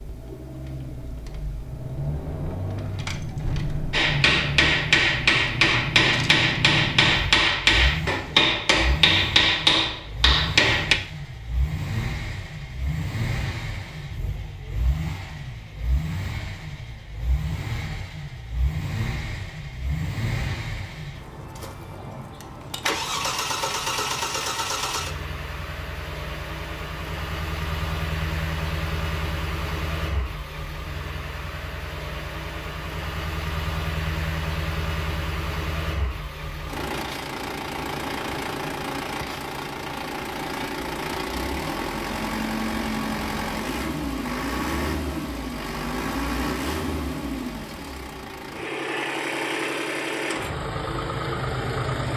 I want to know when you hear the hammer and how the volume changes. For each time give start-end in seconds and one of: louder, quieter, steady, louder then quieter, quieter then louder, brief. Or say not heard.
3.9-10.9 steady.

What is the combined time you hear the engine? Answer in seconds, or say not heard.
52 s.